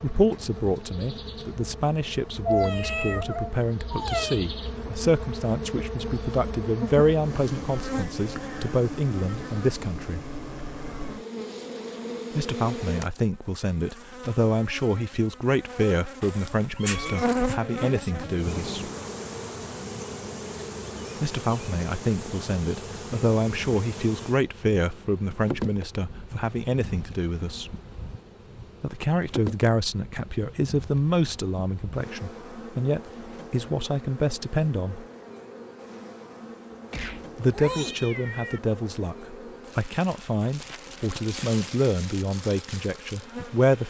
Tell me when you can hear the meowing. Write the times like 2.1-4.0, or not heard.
2.5-4.4, 16.2-17.6, 36.9-38.6.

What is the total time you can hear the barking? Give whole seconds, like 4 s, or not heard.
not heard.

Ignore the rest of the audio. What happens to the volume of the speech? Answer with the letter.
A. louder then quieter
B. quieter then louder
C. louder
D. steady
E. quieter
D.